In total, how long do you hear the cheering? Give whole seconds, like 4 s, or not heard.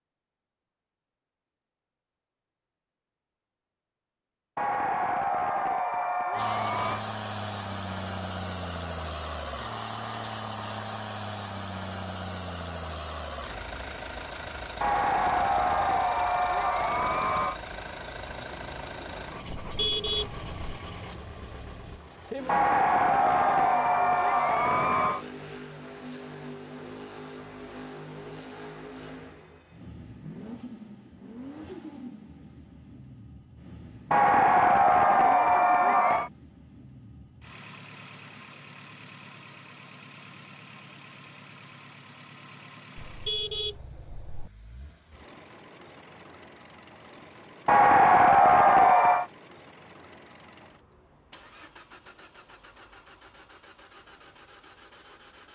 12 s.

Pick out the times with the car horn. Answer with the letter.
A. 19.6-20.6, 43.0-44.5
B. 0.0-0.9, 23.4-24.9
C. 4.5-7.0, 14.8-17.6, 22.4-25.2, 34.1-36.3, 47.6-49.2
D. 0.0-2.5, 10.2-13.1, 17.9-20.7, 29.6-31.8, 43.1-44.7
A.